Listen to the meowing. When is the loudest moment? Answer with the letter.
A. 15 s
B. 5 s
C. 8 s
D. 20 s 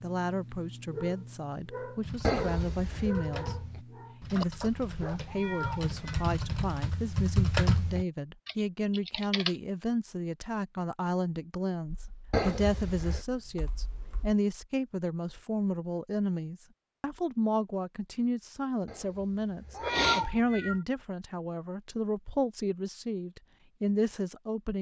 D.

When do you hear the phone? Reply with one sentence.
The phone can't be heard in this clip.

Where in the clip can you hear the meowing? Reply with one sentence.
You can hear the meowing from 5.2 to 6.3 s and from 19.8 to 20.8 s.